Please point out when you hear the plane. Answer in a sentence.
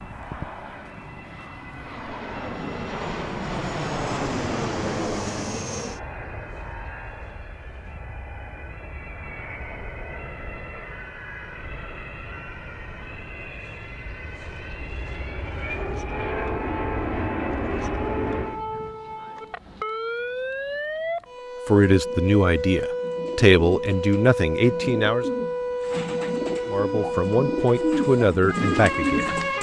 You can hear the plane from 0.0 to 18.6 s.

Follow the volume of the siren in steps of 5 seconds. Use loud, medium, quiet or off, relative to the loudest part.
quiet, quiet, quiet, medium, loud, loud.